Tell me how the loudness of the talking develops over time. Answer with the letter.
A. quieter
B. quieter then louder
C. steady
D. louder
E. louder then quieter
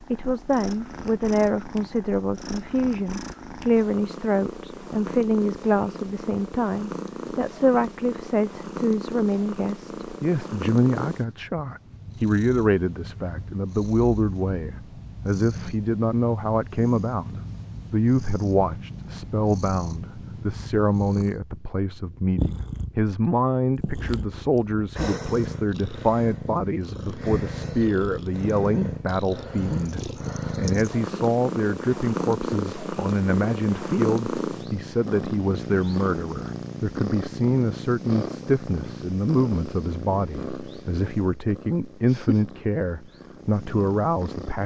C.